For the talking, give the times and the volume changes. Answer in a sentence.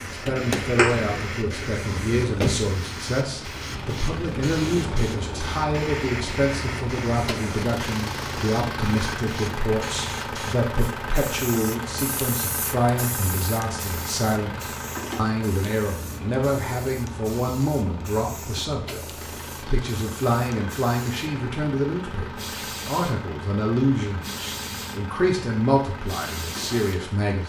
The talking can be heard from 0.1 to 27.4 s, at a steady volume.